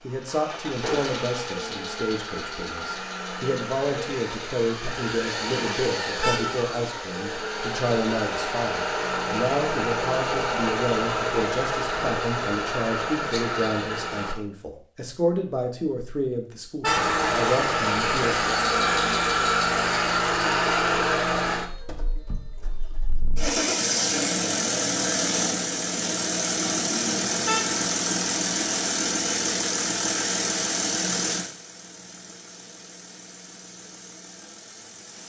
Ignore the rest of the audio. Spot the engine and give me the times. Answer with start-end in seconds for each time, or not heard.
0.0-14.3, 16.9-35.2.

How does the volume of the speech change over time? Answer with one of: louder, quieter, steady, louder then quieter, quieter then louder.
steady.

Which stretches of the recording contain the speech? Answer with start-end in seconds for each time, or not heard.
0.0-18.4.